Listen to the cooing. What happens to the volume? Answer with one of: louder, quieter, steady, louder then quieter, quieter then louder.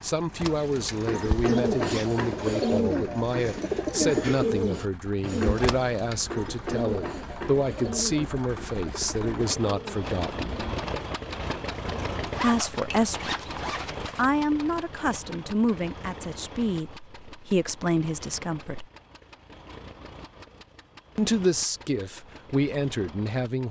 quieter.